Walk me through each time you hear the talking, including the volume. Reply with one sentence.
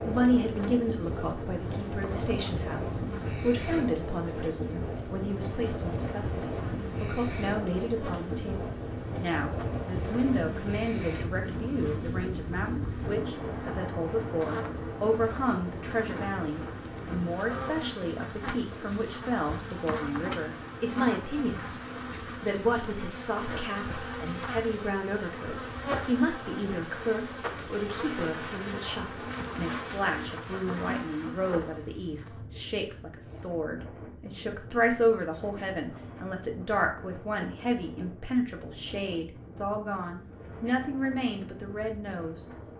The talking can be heard from 0.0 to 42.7 s, at a steady volume.